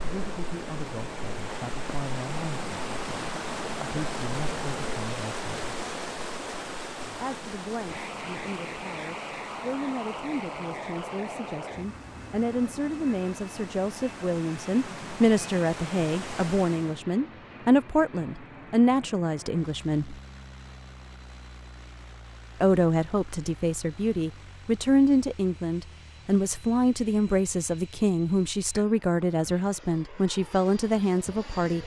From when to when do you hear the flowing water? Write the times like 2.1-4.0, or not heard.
0.0-17.0.